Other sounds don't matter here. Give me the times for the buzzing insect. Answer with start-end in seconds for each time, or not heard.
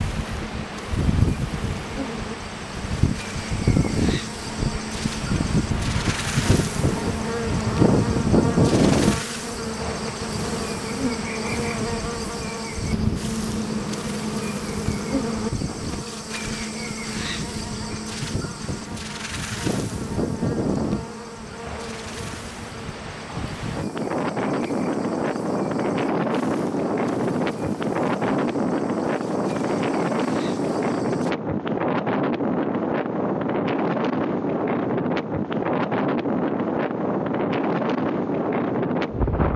0.0-31.4.